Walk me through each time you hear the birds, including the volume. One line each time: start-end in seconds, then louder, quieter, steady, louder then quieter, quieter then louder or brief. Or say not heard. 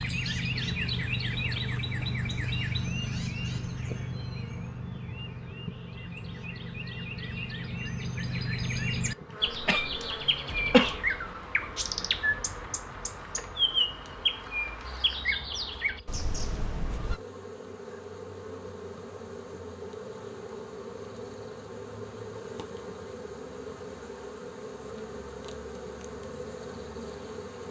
0.0-17.2 quieter then louder.